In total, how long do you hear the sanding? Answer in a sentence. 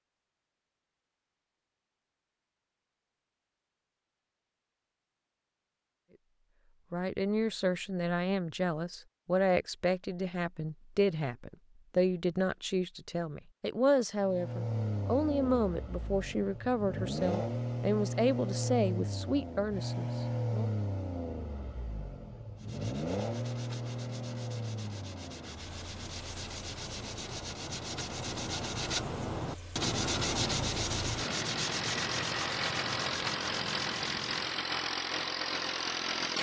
The sanding can be heard for 12 seconds in total.